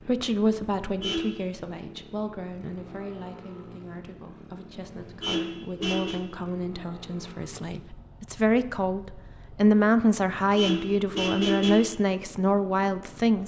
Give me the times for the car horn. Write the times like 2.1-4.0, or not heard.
0.8-1.3, 4.8-6.2, 10.3-11.9.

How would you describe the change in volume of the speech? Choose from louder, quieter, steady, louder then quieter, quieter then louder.
quieter then louder.